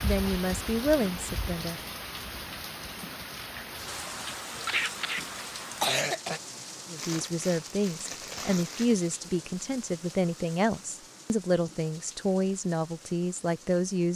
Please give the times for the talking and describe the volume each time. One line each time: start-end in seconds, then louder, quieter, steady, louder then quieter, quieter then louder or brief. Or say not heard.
0.0-1.8 brief
6.9-14.1 steady.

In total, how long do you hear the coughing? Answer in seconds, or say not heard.
2 s.